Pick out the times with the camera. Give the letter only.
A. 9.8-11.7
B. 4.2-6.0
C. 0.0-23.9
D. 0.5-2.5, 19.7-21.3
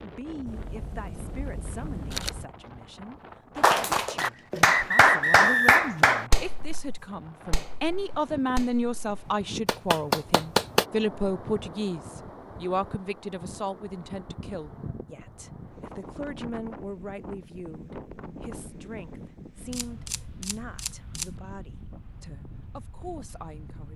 D.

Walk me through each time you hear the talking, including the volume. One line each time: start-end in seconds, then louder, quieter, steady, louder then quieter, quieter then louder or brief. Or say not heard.
0.0-23.9 louder then quieter.